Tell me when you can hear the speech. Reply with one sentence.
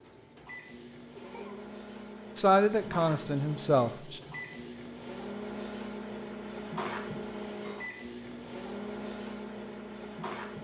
You can hear the speech from 2.4 to 4.2 s.